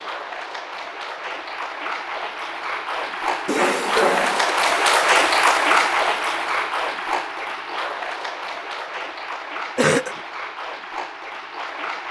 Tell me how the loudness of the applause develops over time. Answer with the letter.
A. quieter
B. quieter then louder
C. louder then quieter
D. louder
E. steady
C.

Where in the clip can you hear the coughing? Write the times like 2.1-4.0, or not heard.
3.5-4.5, 9.8-10.2.